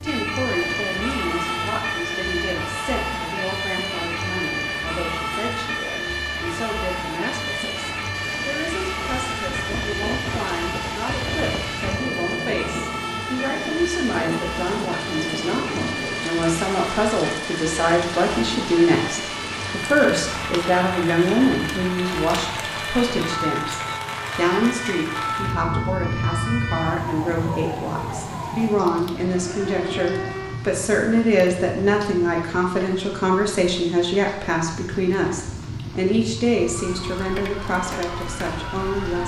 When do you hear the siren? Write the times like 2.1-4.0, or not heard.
0.0-30.7, 36.6-39.2.